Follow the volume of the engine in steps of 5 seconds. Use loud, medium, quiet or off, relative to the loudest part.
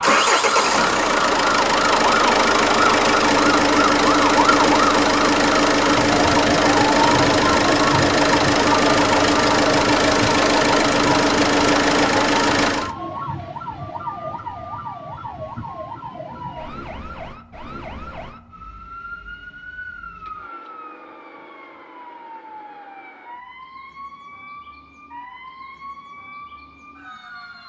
loud, loud, loud, off, off, off.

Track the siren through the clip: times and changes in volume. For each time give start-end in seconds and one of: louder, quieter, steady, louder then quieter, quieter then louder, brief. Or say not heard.
0.0-27.6 quieter.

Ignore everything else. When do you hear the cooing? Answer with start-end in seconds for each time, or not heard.
not heard.